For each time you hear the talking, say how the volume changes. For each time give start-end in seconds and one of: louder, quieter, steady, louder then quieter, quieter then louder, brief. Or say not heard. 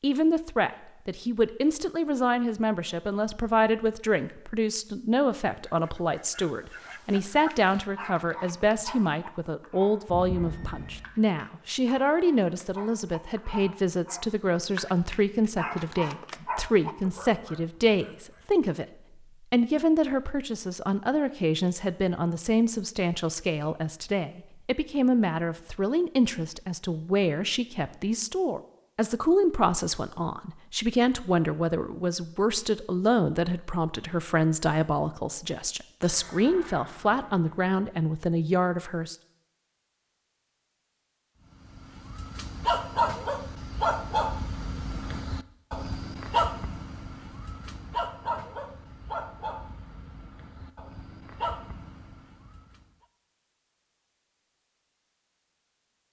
0.0-39.1 steady.